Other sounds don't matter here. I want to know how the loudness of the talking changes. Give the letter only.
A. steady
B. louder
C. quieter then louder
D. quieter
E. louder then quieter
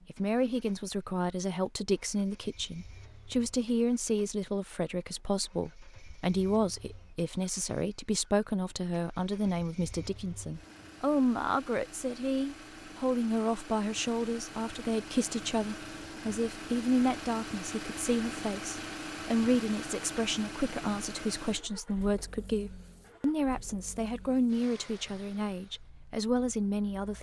A.